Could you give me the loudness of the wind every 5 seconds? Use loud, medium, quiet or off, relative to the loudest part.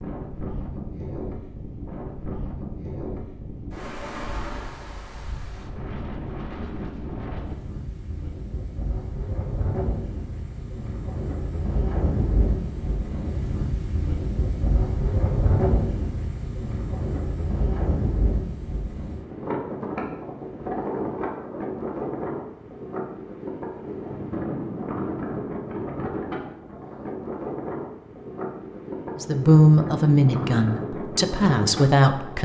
medium, medium, loud, loud, loud, loud, loud.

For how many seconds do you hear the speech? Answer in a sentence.
You can hear the speech for 3 seconds altogether.